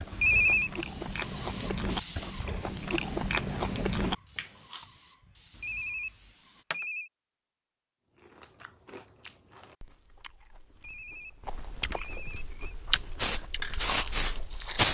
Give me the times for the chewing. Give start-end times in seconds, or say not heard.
0.0-4.8, 8.1-14.8.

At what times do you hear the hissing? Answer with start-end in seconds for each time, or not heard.
0.0-6.7, 12.9-14.8.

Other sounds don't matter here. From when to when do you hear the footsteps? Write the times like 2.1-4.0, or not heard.
not heard.